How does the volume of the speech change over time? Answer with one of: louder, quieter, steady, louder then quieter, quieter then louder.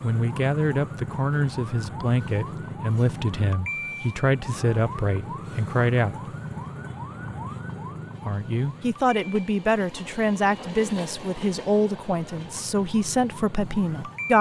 steady.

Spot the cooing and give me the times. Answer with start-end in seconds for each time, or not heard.
not heard.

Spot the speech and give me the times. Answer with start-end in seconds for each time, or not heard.
0.0-6.2, 8.2-14.3.